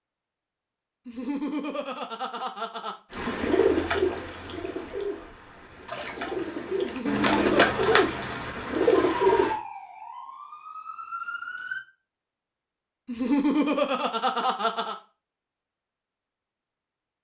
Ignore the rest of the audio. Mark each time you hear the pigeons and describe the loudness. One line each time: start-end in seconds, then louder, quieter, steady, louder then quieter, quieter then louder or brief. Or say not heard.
3.1-9.6 quieter then louder.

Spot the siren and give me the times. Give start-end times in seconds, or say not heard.
9.2-11.8.